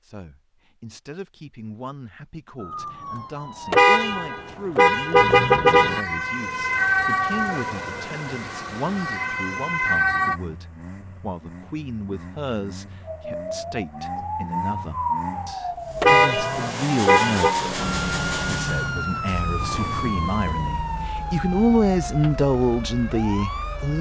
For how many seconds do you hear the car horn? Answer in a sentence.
You can hear the car horn for 4 seconds altogether.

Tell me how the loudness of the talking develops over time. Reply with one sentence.
The volume of the talking goes up.